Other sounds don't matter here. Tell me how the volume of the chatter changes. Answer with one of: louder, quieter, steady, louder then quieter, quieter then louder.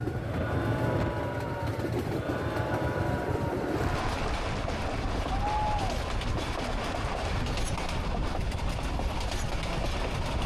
quieter.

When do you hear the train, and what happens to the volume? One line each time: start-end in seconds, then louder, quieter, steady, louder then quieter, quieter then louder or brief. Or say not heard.
0.0-10.4 steady.